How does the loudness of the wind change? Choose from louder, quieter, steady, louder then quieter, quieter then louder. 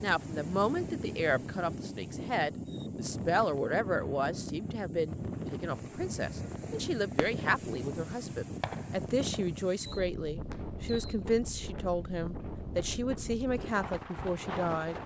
steady.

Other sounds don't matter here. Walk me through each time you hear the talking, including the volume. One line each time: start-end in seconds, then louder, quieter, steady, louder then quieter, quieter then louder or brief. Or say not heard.
0.0-14.9 steady.